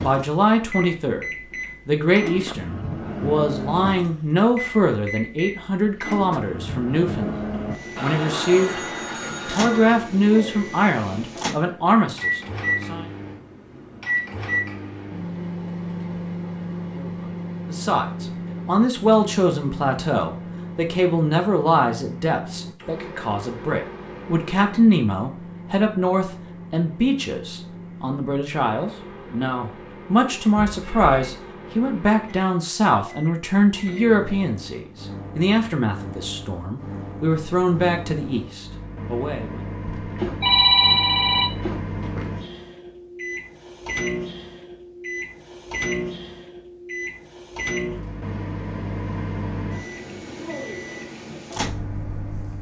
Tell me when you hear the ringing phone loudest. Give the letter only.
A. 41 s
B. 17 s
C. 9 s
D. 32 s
A.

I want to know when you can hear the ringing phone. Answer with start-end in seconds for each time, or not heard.
8.0-9.9, 30.6-31.4, 39.9-42.4.